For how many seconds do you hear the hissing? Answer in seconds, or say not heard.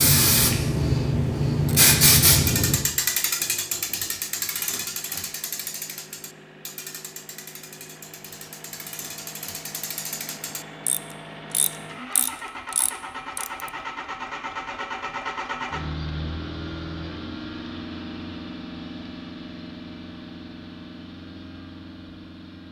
3 s.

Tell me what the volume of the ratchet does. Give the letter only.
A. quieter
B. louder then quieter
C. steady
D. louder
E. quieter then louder
E.